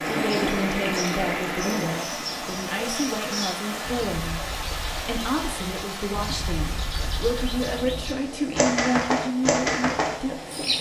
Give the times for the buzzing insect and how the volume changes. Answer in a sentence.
The buzzing insect can't be heard in this clip.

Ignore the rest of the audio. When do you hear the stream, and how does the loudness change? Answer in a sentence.
The stream can be heard from 0.0 to 10.7 s, getting quieter.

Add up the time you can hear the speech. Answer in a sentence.
You can hear the speech for 11 seconds altogether.